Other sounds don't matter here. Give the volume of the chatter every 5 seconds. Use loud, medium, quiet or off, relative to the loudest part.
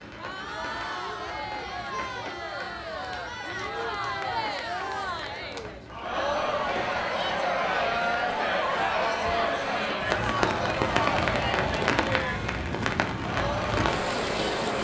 medium, loud, loud.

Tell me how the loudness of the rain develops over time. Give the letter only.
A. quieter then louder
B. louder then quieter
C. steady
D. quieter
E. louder
E.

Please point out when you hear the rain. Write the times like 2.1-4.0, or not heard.
0.0-14.7.